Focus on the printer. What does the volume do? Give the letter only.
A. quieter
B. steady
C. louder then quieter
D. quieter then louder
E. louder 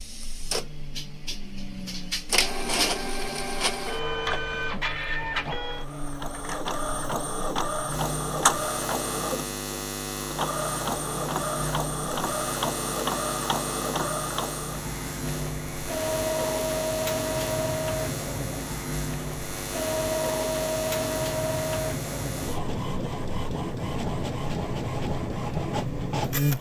B.